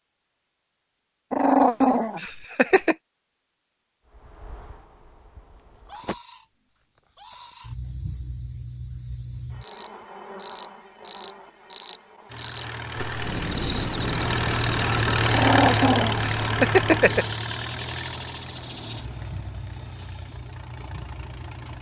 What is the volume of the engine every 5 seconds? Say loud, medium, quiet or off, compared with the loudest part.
off, off, loud, loud, quiet.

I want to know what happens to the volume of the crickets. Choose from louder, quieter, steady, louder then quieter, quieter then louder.
louder then quieter.